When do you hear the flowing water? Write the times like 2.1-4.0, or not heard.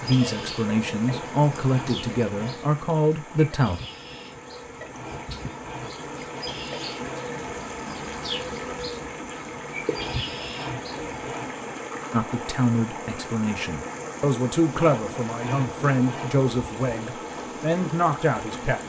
0.0-18.8.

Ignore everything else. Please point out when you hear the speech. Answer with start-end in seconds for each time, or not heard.
0.0-3.8, 12.1-18.8.